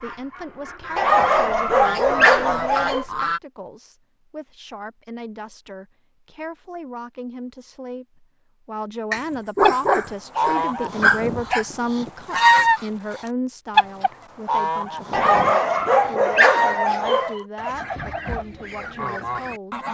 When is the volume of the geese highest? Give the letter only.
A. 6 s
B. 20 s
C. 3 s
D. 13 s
D.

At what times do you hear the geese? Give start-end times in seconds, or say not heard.
0.0-3.4, 9.6-19.8.